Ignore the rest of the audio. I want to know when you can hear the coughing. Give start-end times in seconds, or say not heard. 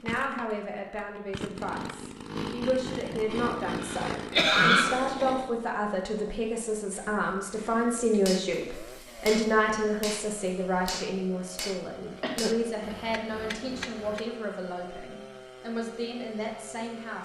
3.8-4.8, 12.2-12.9.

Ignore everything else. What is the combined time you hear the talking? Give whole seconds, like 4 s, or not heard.
17 s.